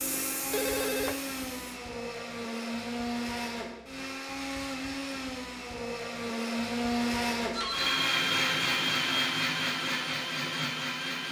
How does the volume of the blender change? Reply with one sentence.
The loudness of the blender goes up.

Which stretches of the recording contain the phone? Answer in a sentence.
The phone can be heard from 0.5 to 1.2 s and from 7.5 to 8.1 s.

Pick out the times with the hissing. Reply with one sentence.
You can hear the hissing from 0.0 to 1.8 s.